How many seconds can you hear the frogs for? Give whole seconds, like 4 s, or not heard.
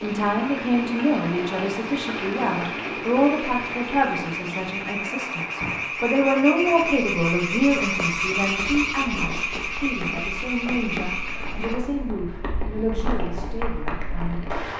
12 s.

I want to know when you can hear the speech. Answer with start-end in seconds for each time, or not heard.
0.0-14.4.